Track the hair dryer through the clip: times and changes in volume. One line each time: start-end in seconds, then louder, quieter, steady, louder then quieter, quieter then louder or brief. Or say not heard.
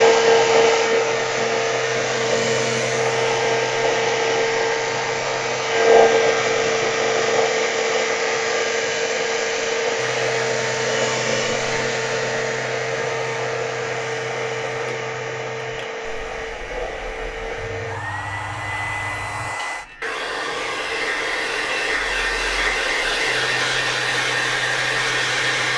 0.0-25.7 quieter then louder.